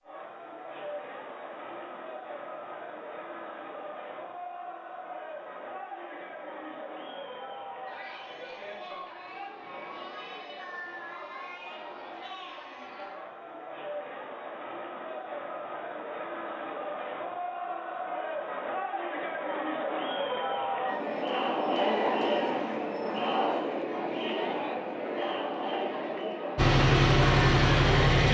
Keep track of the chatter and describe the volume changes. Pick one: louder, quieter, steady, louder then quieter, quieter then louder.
louder.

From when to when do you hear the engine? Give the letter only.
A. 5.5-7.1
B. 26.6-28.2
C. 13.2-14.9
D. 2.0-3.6
B.